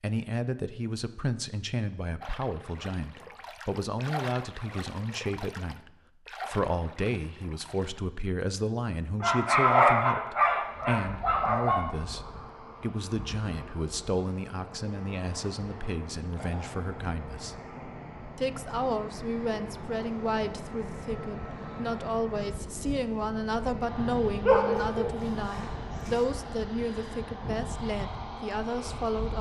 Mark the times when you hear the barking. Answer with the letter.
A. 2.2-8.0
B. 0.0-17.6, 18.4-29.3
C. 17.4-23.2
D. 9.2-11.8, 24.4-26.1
D.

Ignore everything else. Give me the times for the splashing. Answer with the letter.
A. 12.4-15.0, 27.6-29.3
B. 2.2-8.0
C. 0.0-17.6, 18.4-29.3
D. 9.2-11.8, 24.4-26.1
B.